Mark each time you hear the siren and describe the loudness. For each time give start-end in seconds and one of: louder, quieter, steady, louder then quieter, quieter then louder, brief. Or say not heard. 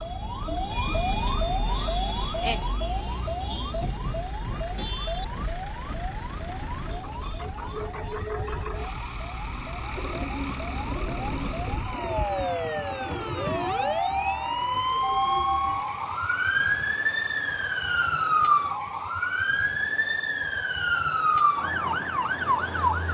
0.0-23.1 quieter then louder.